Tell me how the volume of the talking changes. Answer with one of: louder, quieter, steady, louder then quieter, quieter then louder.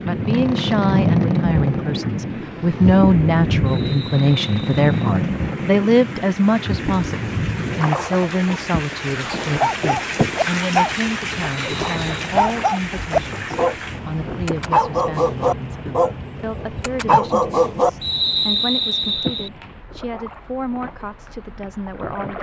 quieter.